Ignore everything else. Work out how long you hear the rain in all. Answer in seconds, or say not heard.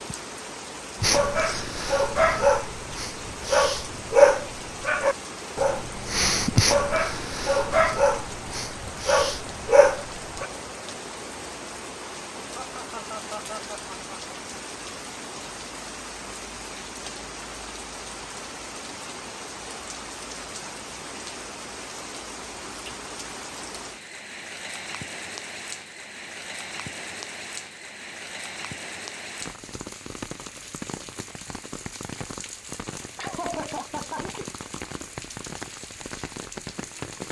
37 s.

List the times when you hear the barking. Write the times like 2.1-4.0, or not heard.
1.0-10.5.